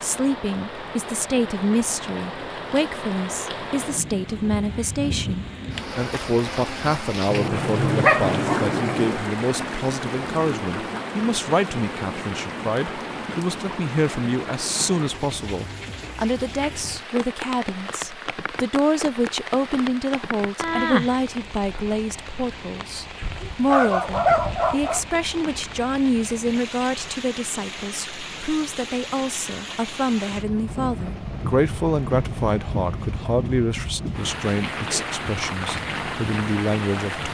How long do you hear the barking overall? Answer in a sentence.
You can hear the barking for 4 seconds altogether.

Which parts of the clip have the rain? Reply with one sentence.
You can hear the rain from 0.0 to 37.2 s.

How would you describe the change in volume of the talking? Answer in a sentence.
The volume of the talking stays about the same.